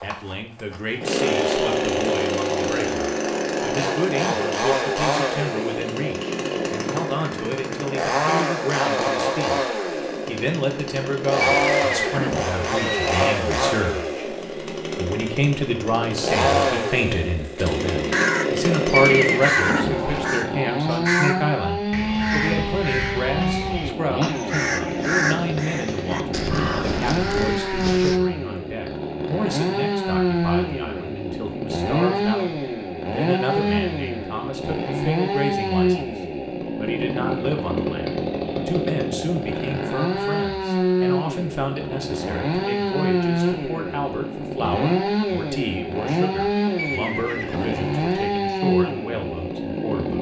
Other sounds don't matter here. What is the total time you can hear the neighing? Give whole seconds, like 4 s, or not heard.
5 s.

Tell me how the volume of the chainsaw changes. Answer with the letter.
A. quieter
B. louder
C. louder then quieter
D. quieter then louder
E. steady
E.